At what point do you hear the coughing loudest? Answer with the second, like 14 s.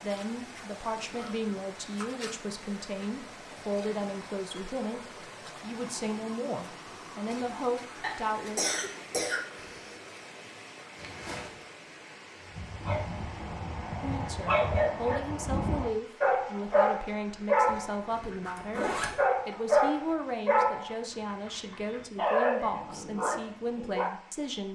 9 s.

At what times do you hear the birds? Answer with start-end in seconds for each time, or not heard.
not heard.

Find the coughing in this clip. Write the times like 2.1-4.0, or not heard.
8.0-9.9.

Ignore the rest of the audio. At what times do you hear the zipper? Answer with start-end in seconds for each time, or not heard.
0.9-2.1, 10.9-11.7, 17.6-19.2.